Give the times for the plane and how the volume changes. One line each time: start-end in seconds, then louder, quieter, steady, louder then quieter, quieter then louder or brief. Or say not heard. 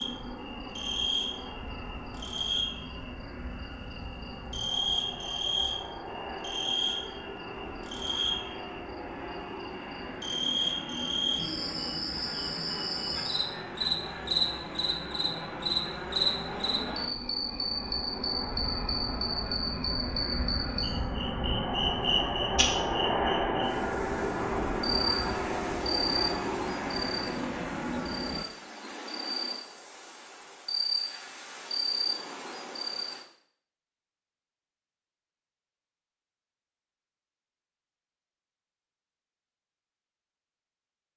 0.0-28.4 louder.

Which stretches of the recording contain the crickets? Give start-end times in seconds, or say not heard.
0.0-33.2.